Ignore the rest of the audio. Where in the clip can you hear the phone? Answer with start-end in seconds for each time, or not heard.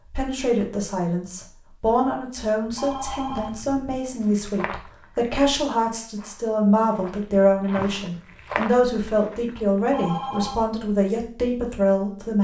2.8-3.6, 9.9-10.7.